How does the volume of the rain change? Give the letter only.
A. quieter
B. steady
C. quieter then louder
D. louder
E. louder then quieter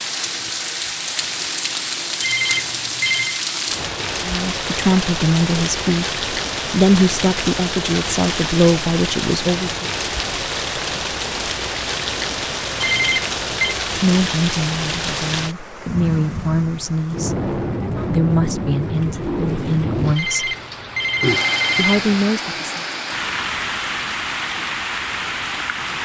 B.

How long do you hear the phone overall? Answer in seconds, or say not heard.
4 s.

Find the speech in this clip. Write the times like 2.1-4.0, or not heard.
4.2-9.8, 13.9-20.6, 21.8-22.8.